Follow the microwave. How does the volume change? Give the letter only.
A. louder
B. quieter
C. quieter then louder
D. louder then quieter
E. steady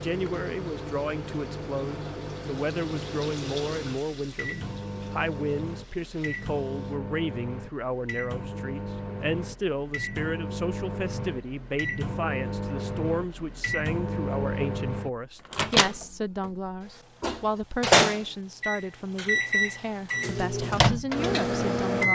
A.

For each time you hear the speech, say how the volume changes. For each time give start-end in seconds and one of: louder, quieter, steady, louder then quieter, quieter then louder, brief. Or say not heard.
0.0-22.0 steady.